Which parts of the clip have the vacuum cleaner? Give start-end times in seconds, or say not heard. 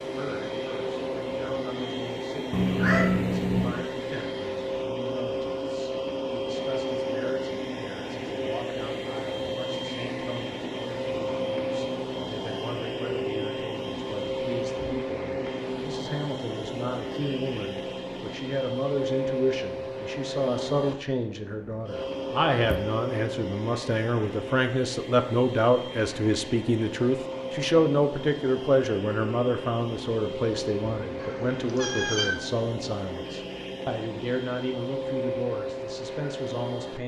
0.0-37.0.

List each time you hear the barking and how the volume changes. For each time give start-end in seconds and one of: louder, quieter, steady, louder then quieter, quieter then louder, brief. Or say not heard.
not heard.